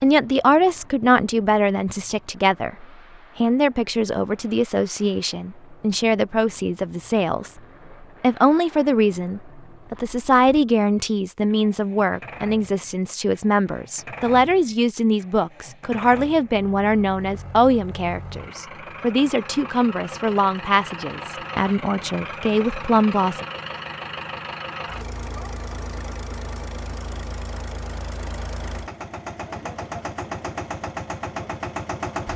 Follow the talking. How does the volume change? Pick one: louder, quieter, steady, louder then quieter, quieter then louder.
steady.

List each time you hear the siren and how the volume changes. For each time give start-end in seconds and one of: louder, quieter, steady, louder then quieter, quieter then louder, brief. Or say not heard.
not heard.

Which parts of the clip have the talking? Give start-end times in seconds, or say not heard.
0.0-23.4.